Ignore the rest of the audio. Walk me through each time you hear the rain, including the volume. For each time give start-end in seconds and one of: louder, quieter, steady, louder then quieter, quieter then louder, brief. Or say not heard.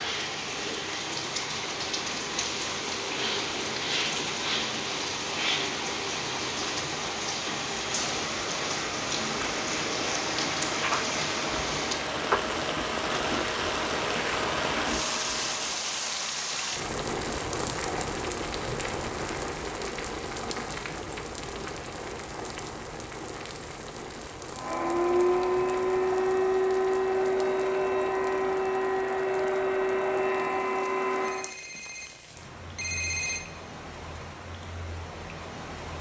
0.0-35.9 quieter.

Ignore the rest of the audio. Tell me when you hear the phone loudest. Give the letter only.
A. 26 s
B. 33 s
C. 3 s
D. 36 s
B.